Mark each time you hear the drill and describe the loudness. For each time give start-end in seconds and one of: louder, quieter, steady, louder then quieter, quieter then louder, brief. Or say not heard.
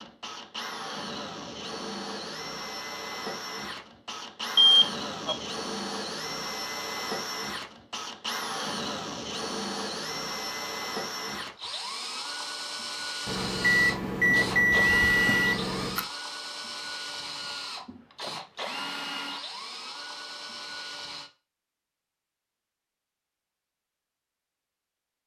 0.0-21.3 steady.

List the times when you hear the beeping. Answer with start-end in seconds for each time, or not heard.
4.5-5.3, 13.2-16.1.